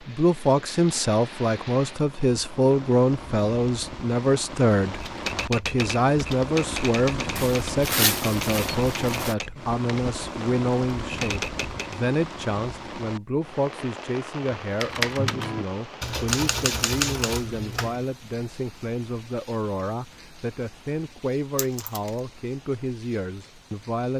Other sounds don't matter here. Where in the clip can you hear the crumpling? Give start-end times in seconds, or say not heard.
7.3-9.3, 21.6-22.1.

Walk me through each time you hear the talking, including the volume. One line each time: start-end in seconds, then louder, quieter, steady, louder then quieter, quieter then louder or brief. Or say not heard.
0.1-24.1 quieter.